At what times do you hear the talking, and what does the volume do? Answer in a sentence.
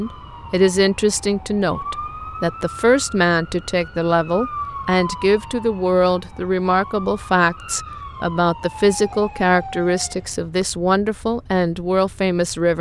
The talking can be heard from 0.0 to 12.7 s, at a steady volume.